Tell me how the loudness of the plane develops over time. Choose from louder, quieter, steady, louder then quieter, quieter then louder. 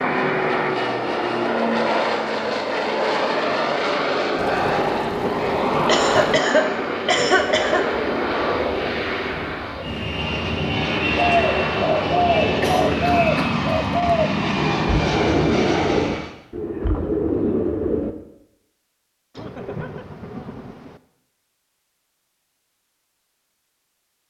steady.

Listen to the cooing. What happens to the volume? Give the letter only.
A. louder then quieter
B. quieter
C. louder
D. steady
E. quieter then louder
D.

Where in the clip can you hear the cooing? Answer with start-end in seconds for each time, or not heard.
11.2-18.1.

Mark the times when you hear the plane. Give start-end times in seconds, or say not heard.
0.0-16.3.